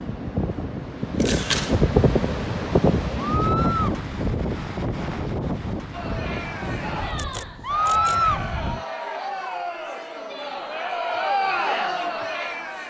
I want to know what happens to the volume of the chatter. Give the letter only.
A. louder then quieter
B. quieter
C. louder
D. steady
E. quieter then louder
C.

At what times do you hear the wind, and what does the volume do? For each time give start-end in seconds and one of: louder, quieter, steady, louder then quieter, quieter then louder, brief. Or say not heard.
0.0-8.8 quieter.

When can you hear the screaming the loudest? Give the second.
8 s.